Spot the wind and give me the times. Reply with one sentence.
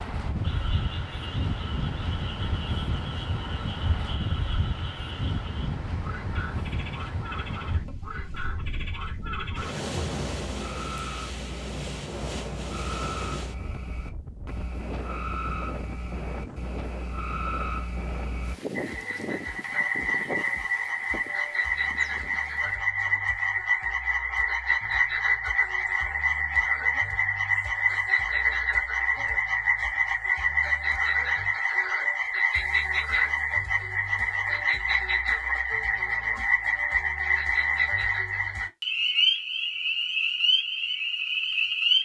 The wind can be heard from 0.0 to 22.8 s.